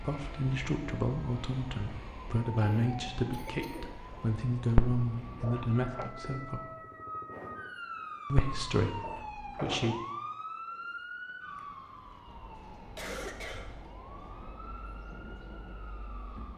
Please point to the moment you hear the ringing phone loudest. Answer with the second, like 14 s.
5 s.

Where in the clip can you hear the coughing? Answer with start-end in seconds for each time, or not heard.
2.5-3.9, 12.9-13.8.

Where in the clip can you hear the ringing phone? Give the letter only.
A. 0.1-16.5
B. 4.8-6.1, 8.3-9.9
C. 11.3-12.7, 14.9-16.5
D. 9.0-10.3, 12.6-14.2
B.